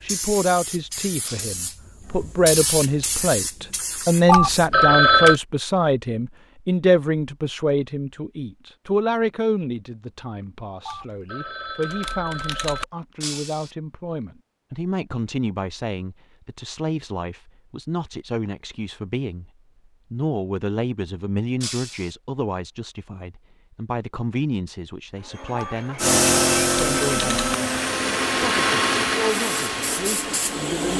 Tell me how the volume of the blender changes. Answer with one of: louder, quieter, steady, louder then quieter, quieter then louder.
louder then quieter.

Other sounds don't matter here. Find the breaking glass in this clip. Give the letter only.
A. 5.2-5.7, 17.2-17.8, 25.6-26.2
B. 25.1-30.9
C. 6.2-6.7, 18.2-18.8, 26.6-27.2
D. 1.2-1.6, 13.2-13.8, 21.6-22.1
D.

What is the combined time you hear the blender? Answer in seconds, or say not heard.
6 s.